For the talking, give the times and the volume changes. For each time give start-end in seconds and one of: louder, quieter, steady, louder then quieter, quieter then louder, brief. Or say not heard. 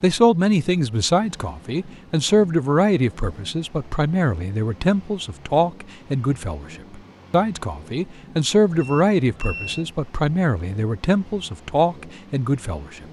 0.0-13.0 steady.